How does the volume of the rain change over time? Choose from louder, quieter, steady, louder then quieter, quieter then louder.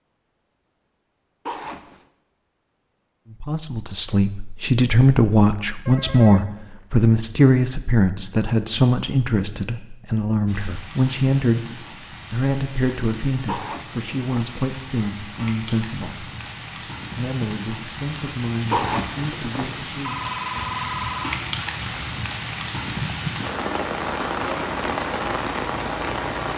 louder.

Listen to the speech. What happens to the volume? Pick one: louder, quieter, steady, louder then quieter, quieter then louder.
quieter.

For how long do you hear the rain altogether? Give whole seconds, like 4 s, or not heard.
16 s.